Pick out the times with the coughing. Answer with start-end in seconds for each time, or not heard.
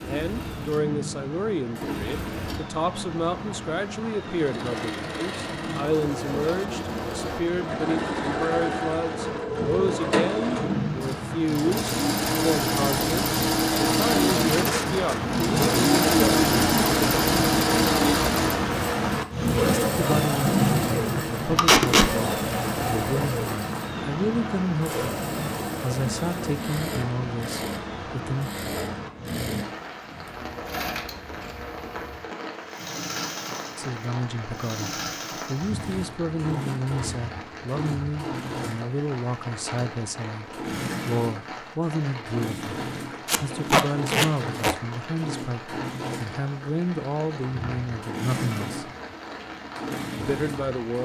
not heard.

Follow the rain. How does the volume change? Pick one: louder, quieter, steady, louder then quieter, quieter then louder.
louder then quieter.